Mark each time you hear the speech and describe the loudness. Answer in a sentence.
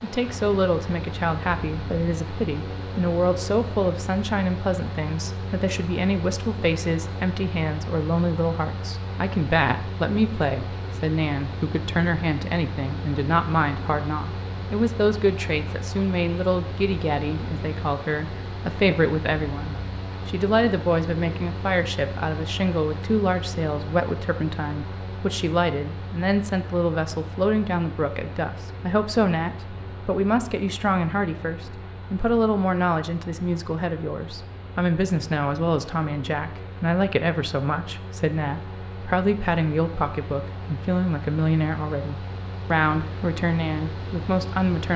You can hear the speech from 0.0 to 44.9 s, at a steady volume.